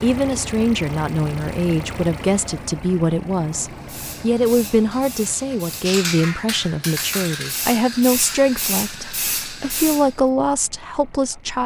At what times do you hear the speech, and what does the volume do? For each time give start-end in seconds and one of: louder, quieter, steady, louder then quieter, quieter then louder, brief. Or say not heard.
0.0-11.6 steady.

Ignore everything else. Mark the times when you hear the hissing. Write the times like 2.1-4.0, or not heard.
3.5-10.2.